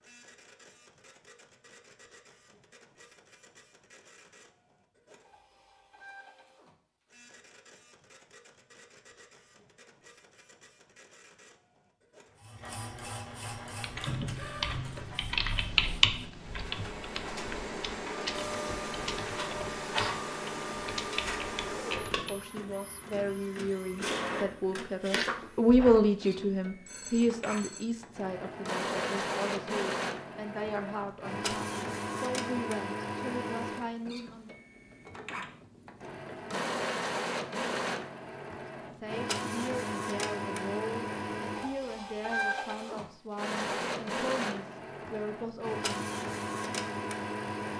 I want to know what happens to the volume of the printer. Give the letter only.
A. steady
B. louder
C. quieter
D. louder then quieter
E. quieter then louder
B.